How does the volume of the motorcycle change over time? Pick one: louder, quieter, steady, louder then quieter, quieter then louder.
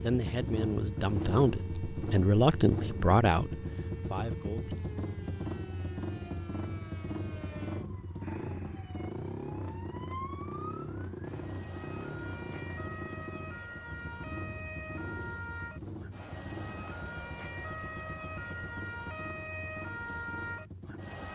quieter.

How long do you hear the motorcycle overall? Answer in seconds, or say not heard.
21 s.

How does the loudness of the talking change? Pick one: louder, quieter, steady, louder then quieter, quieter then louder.
louder then quieter.